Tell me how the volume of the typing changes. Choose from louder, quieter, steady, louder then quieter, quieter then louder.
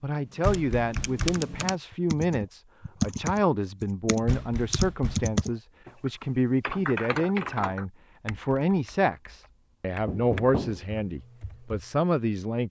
quieter.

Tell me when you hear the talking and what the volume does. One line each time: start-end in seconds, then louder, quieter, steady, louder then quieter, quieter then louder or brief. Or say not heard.
0.0-12.6 steady.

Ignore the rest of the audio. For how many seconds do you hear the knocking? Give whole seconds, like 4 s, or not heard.
3 s.